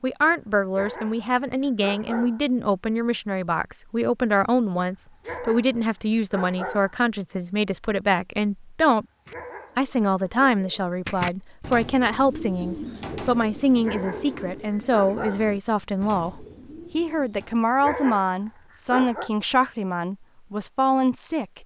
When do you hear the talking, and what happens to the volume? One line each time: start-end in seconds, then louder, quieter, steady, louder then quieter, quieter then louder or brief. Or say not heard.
0.0-9.1 steady
9.8-21.6 steady.